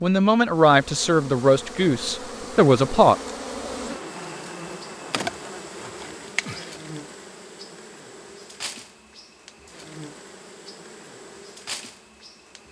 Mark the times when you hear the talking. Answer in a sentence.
You can hear the talking from 0.0 to 3.1 s.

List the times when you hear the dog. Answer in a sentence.
You can't hear the dog here.